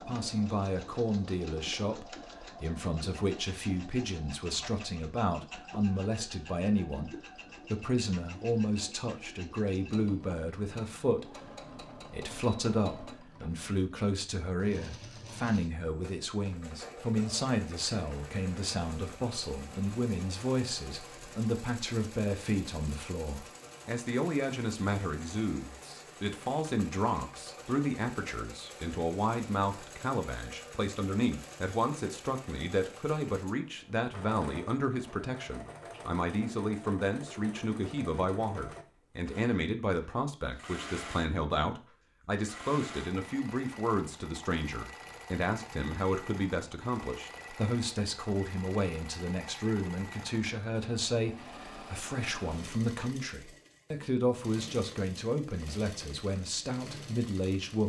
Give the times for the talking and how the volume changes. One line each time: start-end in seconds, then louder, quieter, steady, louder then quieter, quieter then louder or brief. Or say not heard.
0.0-57.8 steady.